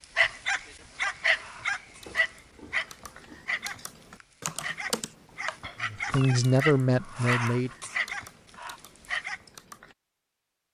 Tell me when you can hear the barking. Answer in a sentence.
The barking can be heard from 0.1 to 9.4 s.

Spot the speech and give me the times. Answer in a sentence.
You can hear the speech from 5.8 to 7.7 s.